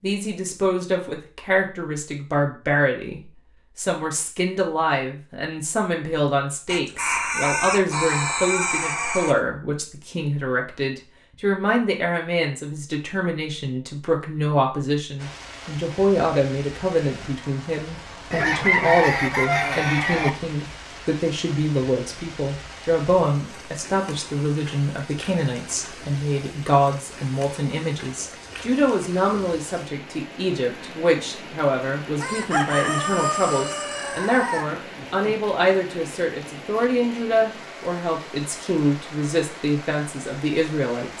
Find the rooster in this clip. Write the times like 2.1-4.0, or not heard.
6.7-9.3, 18.3-20.3, 32.2-35.4.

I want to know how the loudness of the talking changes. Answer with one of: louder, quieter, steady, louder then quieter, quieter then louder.
steady.